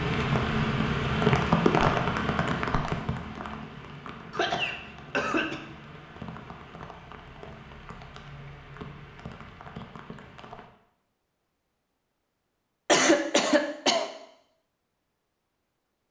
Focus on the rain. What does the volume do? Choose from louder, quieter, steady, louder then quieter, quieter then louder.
quieter.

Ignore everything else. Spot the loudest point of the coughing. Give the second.
13 s.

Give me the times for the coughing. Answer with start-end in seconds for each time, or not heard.
4.3-5.6, 12.8-14.1.